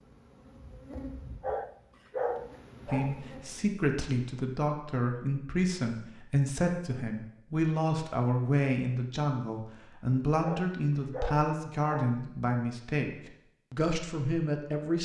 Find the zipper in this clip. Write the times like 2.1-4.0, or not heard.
not heard.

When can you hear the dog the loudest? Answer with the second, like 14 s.
2 s.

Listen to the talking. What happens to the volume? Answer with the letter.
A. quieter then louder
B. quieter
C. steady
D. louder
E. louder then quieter
C.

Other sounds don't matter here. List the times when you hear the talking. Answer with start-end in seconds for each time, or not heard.
2.9-15.0.